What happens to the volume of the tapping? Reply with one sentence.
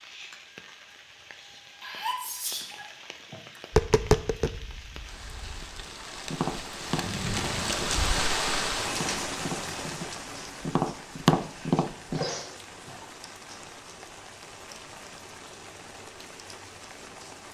The volume of the tapping goes down, then up.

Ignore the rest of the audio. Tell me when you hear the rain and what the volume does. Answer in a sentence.
You can hear the rain from 0.0 to 17.4 s, getting louder then quieter.